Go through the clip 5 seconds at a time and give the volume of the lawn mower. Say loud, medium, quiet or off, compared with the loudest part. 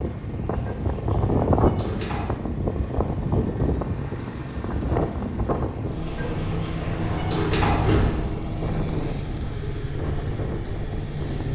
medium, loud, loud.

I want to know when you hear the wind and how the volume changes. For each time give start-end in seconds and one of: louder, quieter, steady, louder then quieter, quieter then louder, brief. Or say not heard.
0.0-11.5 quieter.